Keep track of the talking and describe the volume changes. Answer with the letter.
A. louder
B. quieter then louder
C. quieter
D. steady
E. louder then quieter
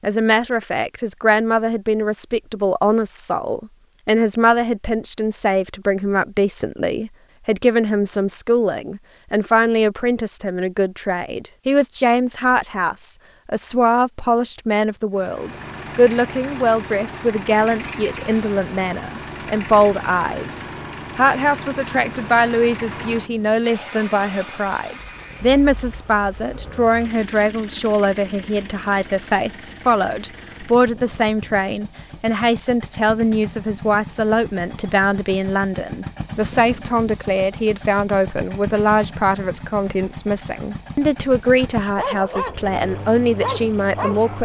D.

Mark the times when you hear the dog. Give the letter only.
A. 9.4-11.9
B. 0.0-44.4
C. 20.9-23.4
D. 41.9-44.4
D.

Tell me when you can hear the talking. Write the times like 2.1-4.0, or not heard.
0.0-44.4.